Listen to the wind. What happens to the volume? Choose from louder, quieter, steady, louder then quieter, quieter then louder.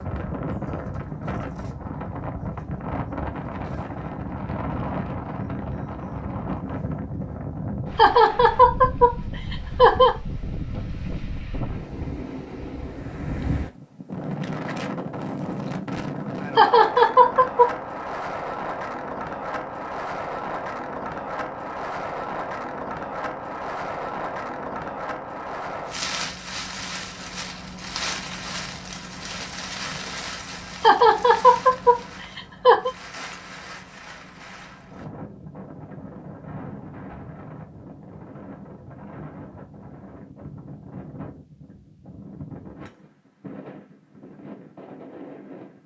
quieter.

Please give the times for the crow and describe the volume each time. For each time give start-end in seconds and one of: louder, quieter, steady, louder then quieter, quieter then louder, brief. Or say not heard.
not heard.